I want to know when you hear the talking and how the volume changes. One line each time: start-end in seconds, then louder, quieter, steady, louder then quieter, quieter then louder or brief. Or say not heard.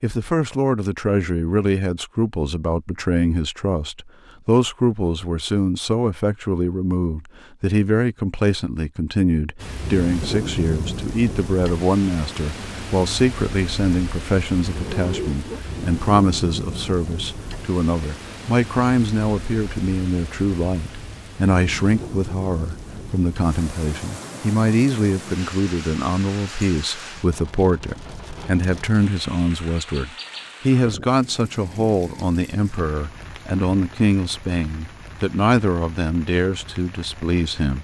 0.0-37.7 steady.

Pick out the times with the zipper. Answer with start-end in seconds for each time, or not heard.
14.6-15.6.